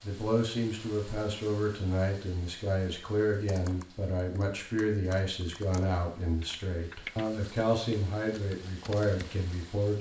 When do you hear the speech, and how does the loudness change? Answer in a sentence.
The speech can be heard from 0.0 to 9.9 s, at a steady volume.